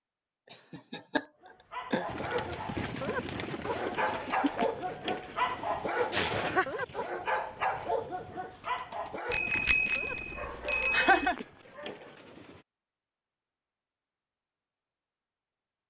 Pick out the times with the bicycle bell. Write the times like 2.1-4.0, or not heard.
9.3-11.3.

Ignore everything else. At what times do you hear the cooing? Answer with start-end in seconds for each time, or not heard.
2.0-12.7.